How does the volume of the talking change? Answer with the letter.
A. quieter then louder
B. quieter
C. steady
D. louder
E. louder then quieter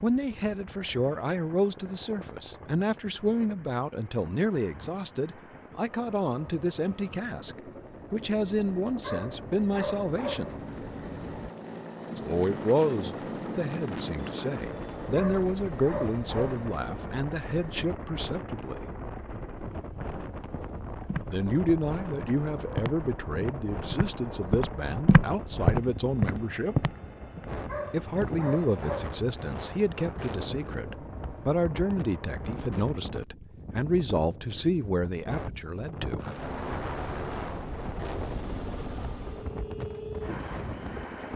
C.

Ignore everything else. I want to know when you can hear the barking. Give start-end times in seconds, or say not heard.
9.0-10.6, 15.2-16.7, 27.6-29.1.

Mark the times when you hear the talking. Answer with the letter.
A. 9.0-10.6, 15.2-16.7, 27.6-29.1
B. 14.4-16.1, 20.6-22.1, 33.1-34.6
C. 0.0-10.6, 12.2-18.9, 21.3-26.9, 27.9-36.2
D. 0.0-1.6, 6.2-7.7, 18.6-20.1
C.